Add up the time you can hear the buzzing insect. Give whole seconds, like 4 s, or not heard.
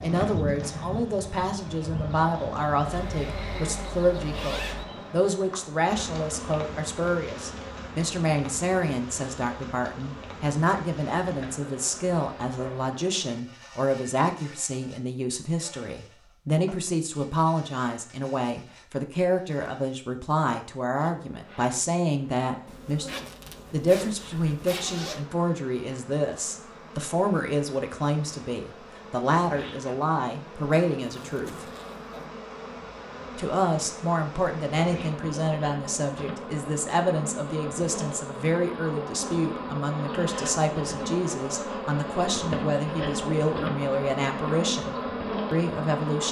46 s.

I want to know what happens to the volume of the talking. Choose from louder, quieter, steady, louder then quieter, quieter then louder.
steady.